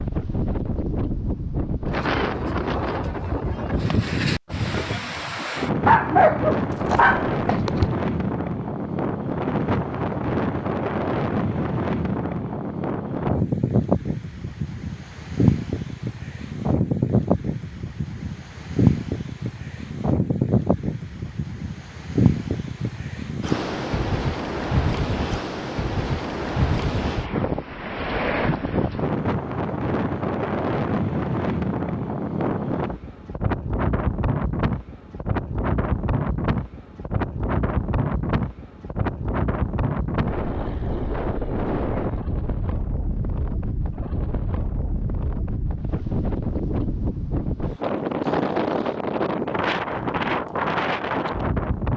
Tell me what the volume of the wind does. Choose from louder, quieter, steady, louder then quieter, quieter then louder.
steady.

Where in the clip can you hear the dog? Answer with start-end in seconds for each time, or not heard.
5.8-8.0.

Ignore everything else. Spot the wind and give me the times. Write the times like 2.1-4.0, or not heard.
0.0-51.9.